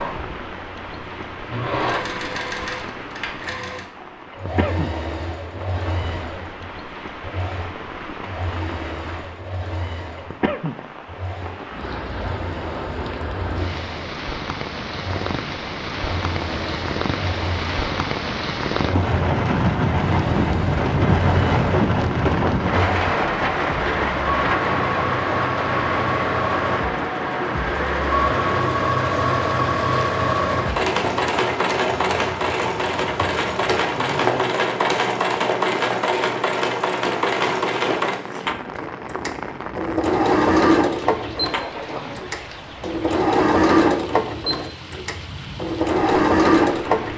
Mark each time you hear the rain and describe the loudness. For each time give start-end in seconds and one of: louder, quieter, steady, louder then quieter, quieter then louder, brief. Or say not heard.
0.0-47.1 louder then quieter.